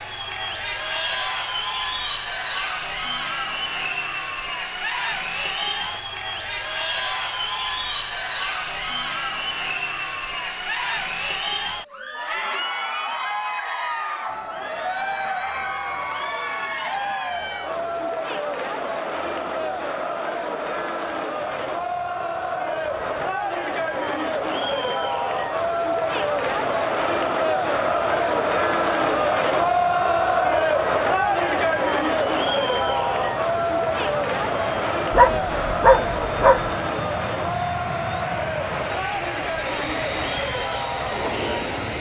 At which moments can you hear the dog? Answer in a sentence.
The dog can be heard from 35.1 to 36.7 s.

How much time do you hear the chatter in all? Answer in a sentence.
The chatter can be heard for 42 seconds in total.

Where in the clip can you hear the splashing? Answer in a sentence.
The splashing can't be heard in this clip.